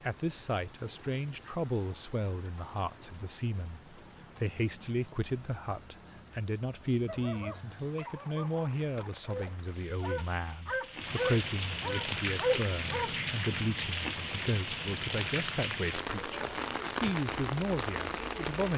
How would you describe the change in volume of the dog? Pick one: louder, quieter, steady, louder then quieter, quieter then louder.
louder.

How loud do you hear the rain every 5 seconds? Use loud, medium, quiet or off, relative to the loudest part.
quiet, quiet, loud, loud.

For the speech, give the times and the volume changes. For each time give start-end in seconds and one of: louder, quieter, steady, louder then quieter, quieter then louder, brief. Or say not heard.
0.0-18.7 steady.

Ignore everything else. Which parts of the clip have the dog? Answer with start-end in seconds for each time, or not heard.
7.0-13.6.